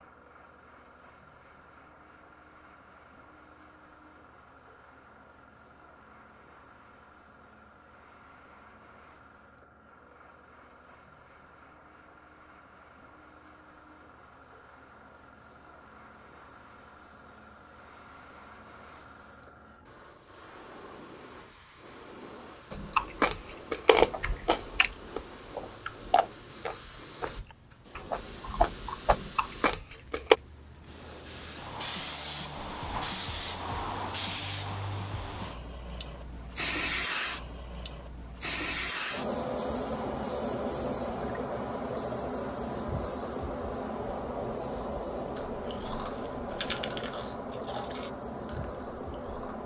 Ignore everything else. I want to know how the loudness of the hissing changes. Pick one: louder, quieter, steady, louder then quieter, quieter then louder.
louder.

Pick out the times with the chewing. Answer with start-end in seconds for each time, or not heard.
22.7-30.4, 45.4-49.6.